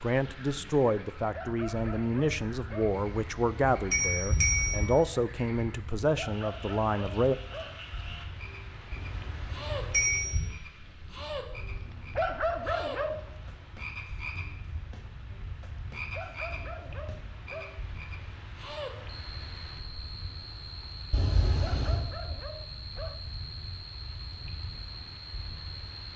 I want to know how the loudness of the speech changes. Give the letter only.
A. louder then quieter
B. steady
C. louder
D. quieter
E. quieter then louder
B.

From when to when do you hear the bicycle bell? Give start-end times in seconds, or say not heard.
2.9-4.9, 8.9-10.4, 21.1-22.0.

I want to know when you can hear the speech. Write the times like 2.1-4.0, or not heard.
0.0-7.3.